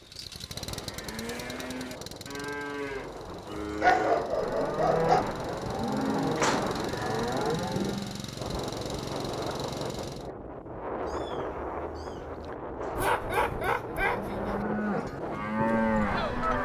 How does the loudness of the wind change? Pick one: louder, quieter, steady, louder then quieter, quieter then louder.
louder.